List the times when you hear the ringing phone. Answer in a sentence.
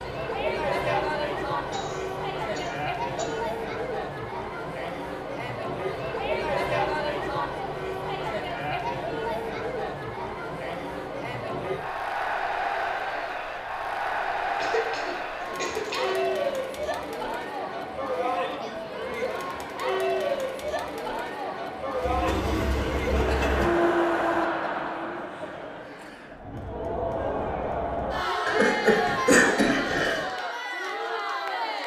You can't hear the ringing phone here.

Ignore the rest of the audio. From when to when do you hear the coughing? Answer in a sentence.
You can hear the coughing from 1.7 to 3.2 s, from 14.4 to 16.2 s and from 28.4 to 30.2 s.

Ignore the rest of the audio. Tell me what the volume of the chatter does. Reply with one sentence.
The volume of the chatter stays about the same.